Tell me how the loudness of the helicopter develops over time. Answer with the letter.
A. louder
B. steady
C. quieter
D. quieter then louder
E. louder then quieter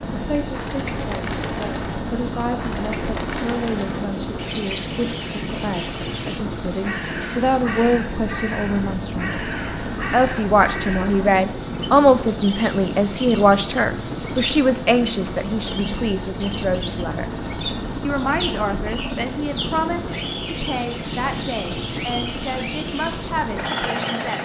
B.